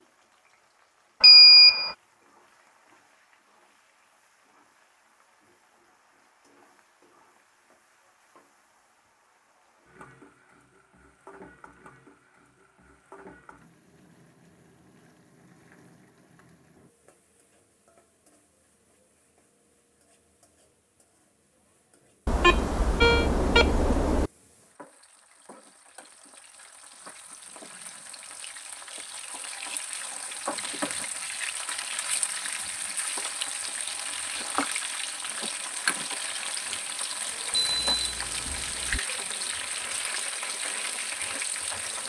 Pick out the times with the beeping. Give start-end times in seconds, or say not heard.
1.2-1.9, 22.2-24.3, 37.5-39.0.